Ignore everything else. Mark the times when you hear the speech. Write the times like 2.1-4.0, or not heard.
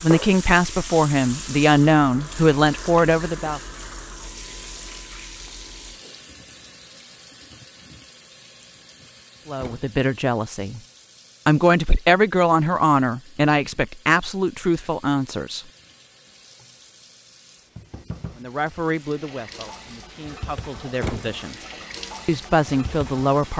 0.0-3.6, 9.4-10.8, 11.4-15.6, 18.4-21.6, 22.2-23.5.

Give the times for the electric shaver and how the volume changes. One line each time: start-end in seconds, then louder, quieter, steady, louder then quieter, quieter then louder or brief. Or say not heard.
not heard.